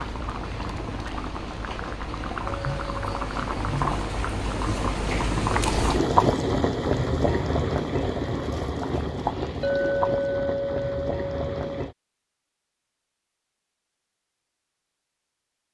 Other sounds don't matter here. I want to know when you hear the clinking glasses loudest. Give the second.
10 s.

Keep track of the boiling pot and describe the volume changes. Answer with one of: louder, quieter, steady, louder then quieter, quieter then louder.
louder then quieter.